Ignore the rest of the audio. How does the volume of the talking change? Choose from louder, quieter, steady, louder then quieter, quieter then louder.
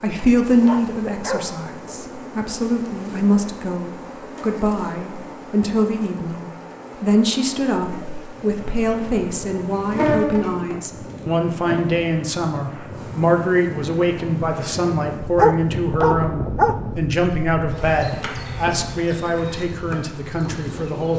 steady.